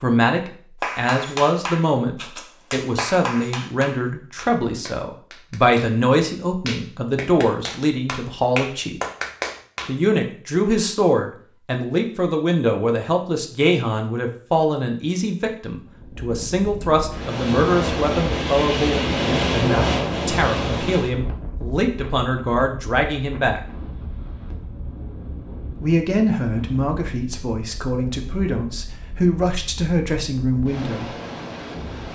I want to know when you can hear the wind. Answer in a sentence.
The wind can be heard from 15.8 to 32.1 s.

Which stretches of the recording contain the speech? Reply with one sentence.
You can hear the speech from 0.0 to 9.0 s, from 9.8 to 23.6 s and from 25.8 to 31.1 s.